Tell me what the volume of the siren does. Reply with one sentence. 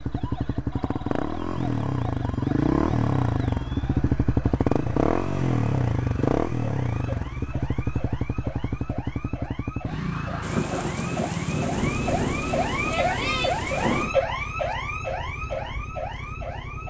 The volume of the siren goes up.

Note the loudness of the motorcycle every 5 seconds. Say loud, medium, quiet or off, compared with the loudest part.
loud, loud, medium, quiet.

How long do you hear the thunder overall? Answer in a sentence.
You can hear the thunder for 4 seconds altogether.